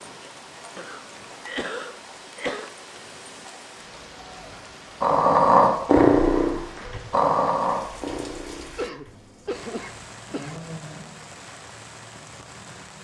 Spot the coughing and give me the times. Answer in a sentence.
You can hear the coughing from 0.8 to 2.7 s and from 8.8 to 10.6 s.